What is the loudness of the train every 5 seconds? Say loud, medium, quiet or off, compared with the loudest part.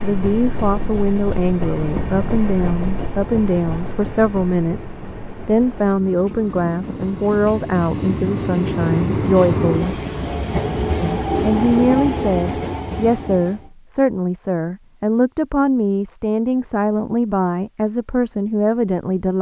medium, loud, loud, off.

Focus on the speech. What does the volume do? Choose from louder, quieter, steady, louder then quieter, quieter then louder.
steady.